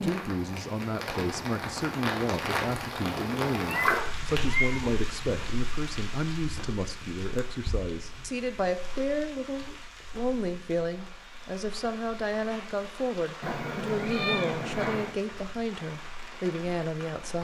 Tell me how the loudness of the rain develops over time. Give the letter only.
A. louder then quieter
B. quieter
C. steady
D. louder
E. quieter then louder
B.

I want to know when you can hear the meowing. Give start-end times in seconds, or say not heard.
3.6-4.8, 13.4-15.2.